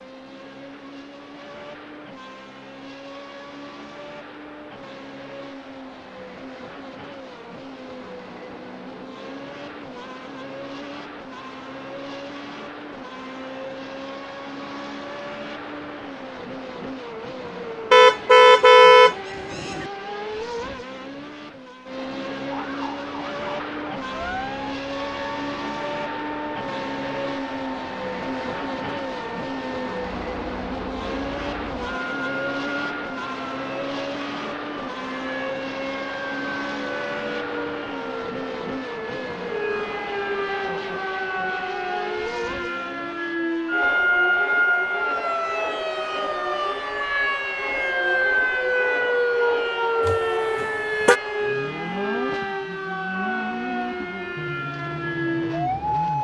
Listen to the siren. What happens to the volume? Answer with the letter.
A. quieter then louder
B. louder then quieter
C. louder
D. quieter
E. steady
C.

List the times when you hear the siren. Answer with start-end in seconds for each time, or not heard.
22.4-56.2.